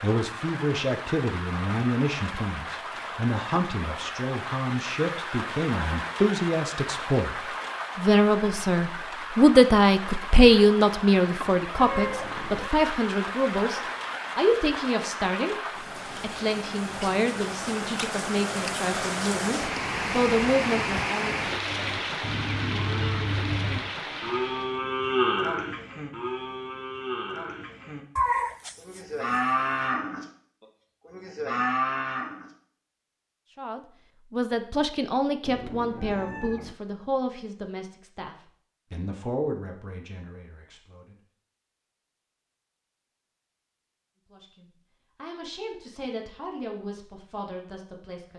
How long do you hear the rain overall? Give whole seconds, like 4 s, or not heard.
25 s.